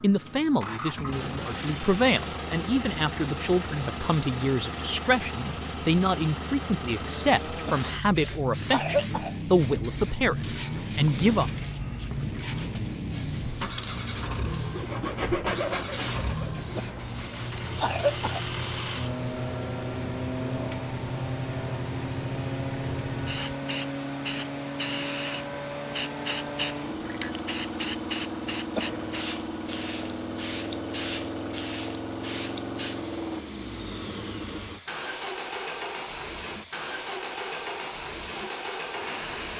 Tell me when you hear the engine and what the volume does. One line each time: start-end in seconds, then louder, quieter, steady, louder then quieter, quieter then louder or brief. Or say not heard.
0.0-39.5 steady.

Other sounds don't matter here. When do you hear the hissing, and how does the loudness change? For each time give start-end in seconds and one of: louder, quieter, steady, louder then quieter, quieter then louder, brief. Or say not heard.
7.7-39.5 steady.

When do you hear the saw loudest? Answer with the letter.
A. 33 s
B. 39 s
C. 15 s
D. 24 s
C.